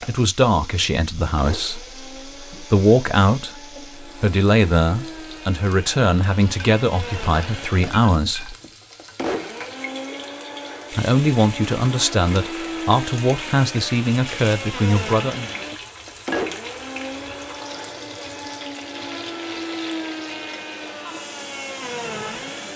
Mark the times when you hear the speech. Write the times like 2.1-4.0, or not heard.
0.1-8.6, 10.9-15.5.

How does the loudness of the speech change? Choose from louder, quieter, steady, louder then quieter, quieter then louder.
steady.